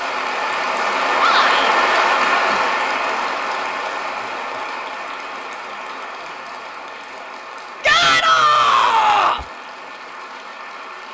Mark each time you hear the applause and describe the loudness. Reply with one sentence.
The applause can be heard from 0.0 to 11.0 s, getting quieter.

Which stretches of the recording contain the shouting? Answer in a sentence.
The shouting can be heard from 1.1 to 1.7 s and from 7.8 to 9.4 s.